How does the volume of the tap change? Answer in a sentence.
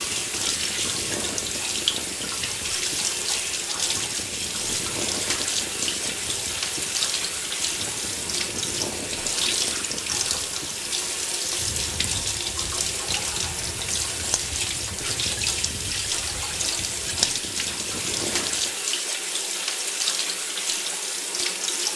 The loudness of the tap stays about the same.